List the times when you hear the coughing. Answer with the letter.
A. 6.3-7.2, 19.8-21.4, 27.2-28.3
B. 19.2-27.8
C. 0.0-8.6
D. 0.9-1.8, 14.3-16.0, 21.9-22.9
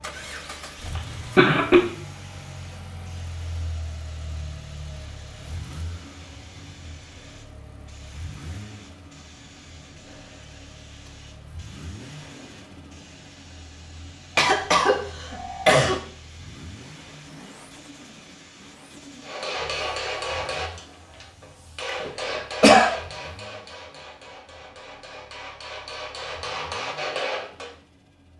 D.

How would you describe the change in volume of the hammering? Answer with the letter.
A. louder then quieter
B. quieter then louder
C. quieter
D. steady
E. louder
B.